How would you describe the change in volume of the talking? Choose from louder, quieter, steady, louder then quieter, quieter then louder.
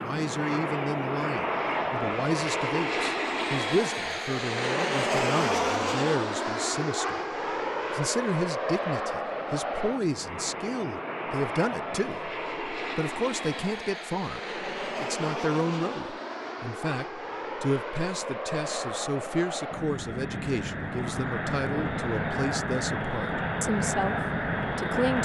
steady.